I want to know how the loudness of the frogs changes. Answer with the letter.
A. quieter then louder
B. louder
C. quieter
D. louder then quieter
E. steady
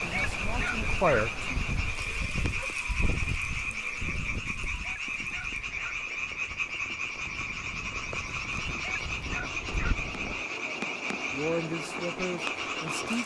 E.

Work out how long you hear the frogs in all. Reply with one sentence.
You can hear the frogs for 13 seconds altogether.